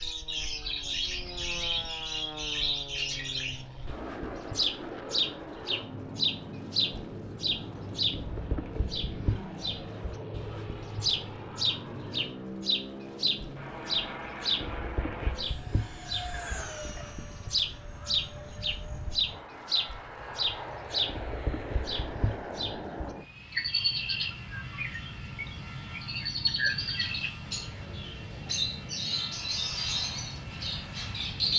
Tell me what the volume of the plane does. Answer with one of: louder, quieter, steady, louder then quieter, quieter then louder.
steady.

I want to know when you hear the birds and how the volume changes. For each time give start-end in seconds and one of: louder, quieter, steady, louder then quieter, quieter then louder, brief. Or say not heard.
0.0-31.5 steady.